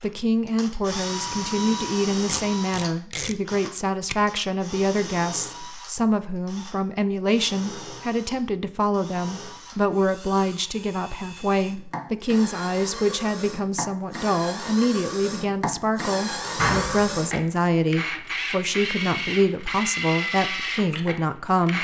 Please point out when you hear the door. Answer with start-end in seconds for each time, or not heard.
16.6-17.1.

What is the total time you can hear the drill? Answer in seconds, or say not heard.
22 s.